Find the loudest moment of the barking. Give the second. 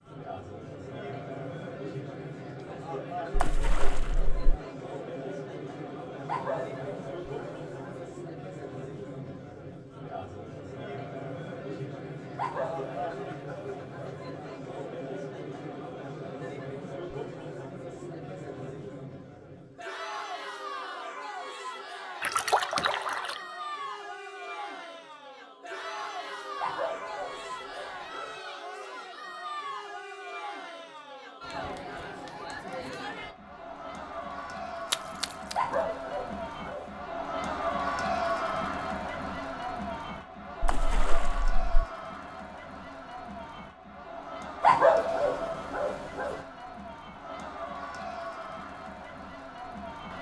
45 s.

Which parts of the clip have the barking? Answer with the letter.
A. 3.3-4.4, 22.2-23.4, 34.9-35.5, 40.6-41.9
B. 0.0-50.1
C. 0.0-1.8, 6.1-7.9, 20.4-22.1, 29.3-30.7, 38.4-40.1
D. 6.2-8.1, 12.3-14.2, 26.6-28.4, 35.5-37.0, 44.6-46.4
D.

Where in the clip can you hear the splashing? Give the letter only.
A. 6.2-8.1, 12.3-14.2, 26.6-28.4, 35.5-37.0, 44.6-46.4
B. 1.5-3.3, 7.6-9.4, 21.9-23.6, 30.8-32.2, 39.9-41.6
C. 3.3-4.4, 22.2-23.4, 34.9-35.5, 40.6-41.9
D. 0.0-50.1
C.